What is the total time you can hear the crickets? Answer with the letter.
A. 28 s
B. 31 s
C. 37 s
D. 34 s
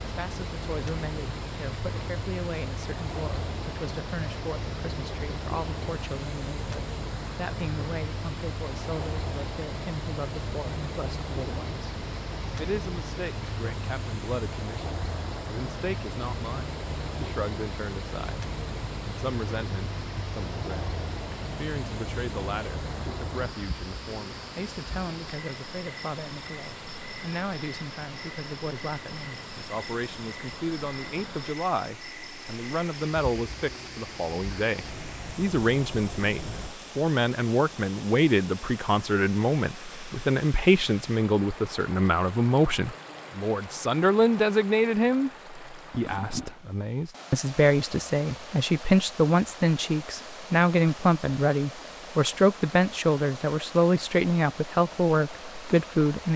C.